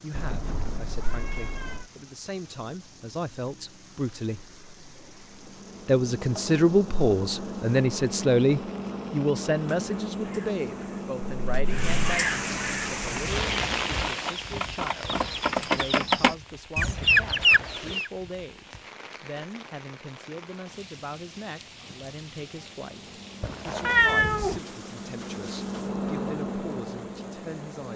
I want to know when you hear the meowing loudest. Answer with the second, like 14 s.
24 s.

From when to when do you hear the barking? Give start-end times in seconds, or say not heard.
not heard.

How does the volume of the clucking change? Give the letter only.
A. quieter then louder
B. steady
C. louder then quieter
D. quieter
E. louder
E.